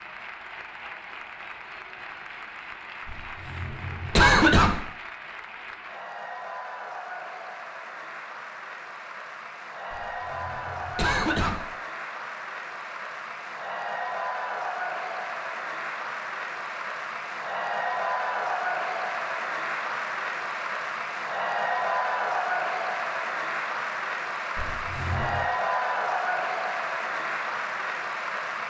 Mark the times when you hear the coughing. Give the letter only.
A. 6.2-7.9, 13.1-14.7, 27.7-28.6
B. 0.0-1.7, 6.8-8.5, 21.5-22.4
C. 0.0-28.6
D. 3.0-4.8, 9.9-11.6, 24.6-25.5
D.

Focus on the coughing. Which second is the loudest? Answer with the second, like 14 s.
4 s.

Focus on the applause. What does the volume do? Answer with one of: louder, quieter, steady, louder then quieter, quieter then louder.
louder.